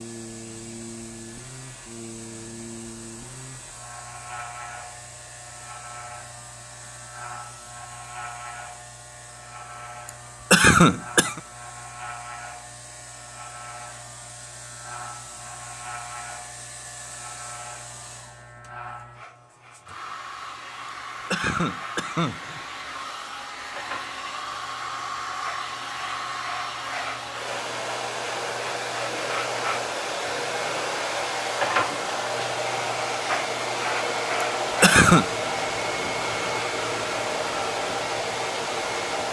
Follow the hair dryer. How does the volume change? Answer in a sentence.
The volume of the hair dryer goes up.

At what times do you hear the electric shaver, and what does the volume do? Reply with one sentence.
The electric shaver can be heard from 0.0 to 39.2 s, getting louder.